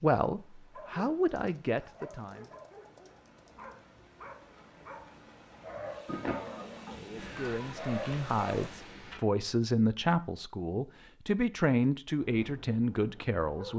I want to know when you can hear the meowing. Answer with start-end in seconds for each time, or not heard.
6.0-7.8.